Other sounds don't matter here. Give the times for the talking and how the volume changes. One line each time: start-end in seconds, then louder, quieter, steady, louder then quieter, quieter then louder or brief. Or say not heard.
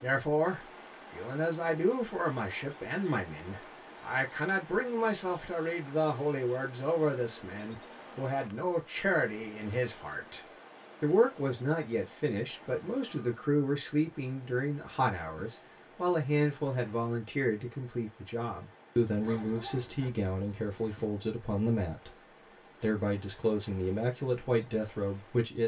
0.0-25.6 steady.